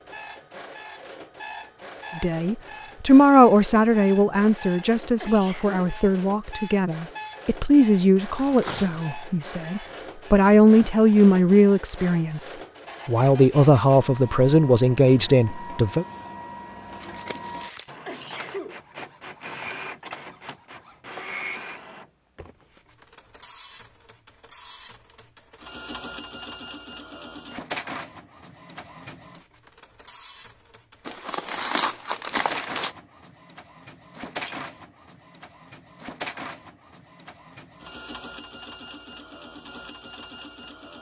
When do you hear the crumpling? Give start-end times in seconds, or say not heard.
8.3-9.2, 17.0-17.9, 31.1-32.9.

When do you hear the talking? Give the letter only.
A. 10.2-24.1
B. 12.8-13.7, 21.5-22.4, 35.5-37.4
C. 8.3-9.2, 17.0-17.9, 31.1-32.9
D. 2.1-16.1
D.